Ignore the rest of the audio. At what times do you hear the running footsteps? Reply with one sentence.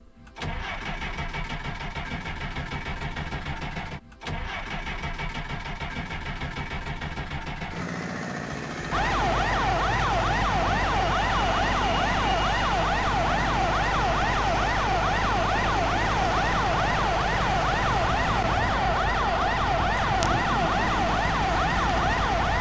The running footsteps can't be heard in this clip.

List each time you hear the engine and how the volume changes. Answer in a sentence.
You can hear the engine from 0.0 to 22.5 s, at a steady volume.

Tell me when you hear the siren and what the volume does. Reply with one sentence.
The siren can be heard from 8.9 to 22.5 s, at a steady volume.